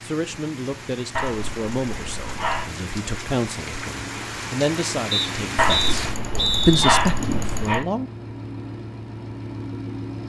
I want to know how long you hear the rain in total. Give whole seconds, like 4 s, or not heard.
6 s.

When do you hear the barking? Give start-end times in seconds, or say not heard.
1.1-2.7, 5.5-7.8.